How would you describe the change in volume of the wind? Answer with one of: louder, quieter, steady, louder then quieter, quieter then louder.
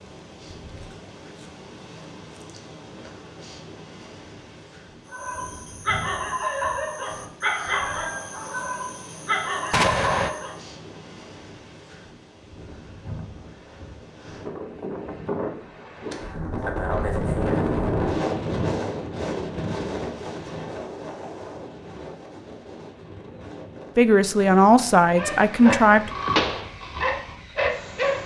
louder then quieter.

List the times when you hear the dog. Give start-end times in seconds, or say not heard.
5.1-10.6, 25.1-28.2.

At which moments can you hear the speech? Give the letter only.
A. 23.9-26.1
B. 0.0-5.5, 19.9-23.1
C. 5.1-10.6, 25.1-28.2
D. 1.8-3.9
A.